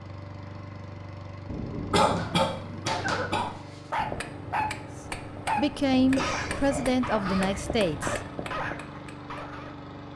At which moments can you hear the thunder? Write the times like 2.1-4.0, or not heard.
1.4-3.4.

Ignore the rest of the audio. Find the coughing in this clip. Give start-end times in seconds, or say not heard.
1.9-3.5, 6.1-7.5.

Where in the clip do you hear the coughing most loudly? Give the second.
2 s.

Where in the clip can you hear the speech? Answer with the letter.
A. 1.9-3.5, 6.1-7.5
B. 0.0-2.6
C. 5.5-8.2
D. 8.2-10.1
C.